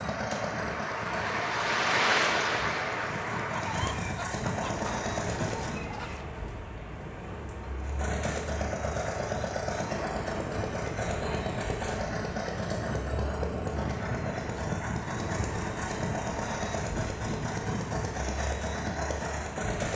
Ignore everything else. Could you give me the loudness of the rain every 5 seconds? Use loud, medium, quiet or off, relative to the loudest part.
loud, medium, medium, medium.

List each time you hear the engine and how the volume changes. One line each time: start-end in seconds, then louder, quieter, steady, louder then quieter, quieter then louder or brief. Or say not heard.
0.0-5.9 quieter then louder
7.8-19.9 steady.